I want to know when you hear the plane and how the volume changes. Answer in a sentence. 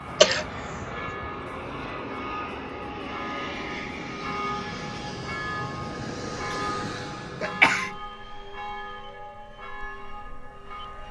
The plane can be heard from 0.0 to 11.0 s, getting quieter.